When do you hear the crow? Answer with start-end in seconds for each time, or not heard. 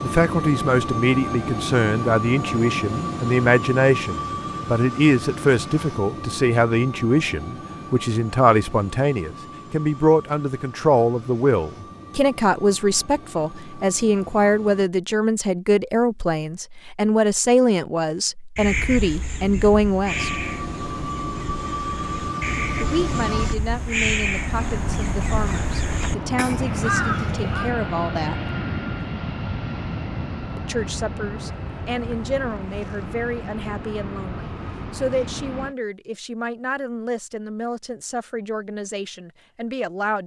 18.6-27.8.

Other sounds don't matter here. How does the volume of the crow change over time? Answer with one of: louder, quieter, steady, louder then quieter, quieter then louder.
quieter then louder.